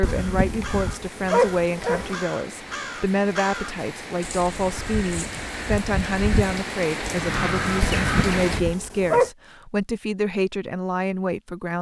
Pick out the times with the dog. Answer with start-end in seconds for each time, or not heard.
0.0-2.2, 7.8-9.3.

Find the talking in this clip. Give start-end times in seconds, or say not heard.
0.0-11.7.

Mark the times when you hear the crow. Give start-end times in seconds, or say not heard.
0.0-8.8.